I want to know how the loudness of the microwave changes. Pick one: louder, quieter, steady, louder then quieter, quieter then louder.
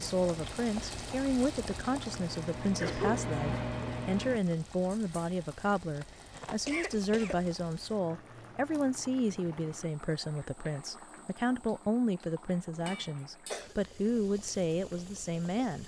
louder.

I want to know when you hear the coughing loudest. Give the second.
3 s.